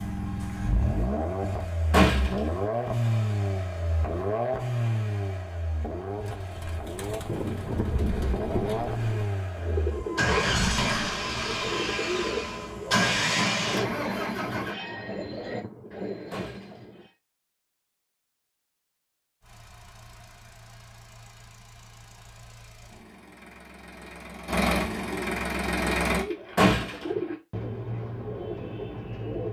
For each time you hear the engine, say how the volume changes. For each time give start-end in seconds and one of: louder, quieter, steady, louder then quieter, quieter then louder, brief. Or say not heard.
0.0-14.8 quieter then louder
19.4-26.2 louder.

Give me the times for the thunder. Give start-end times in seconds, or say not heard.
7.2-9.2, 15.1-17.1.